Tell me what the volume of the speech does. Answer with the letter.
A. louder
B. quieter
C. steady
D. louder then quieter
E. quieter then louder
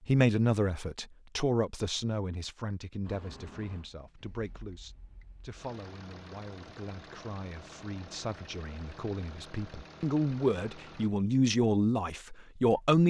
E.